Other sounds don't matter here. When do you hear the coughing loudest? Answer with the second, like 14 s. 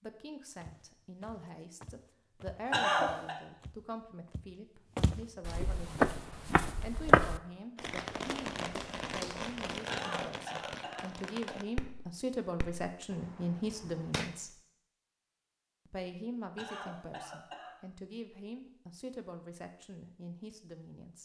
3 s.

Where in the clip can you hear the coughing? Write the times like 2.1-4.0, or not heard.
2.7-3.4, 9.9-11.6, 16.6-17.8.